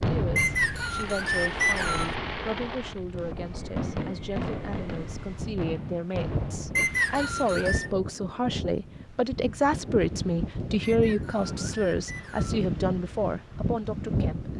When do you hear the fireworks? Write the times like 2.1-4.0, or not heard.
0.0-7.2.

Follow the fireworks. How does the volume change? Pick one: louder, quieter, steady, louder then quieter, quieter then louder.
steady.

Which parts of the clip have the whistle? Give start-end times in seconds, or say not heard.
0.3-2.1, 6.8-7.9, 10.8-12.6.